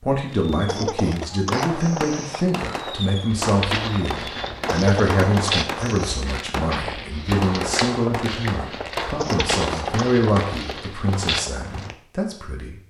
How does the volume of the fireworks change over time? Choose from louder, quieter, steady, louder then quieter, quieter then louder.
steady.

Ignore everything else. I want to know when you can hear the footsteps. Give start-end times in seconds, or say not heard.
3.3-11.9.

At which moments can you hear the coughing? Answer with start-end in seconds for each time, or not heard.
0.7-2.5, 4.7-6.2, 9.2-10.2.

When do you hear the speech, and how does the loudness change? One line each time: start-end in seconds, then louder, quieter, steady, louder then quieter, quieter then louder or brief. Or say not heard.
0.0-12.8 steady.